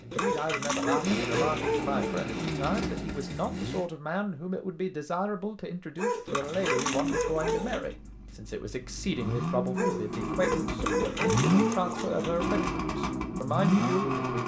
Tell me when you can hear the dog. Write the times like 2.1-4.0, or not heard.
0.1-2.2, 6.0-7.8, 9.8-12.1.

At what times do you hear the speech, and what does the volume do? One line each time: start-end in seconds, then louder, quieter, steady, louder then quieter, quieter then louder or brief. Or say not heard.
0.0-14.2 steady.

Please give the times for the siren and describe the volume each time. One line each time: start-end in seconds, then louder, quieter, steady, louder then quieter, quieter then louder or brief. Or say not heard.
not heard.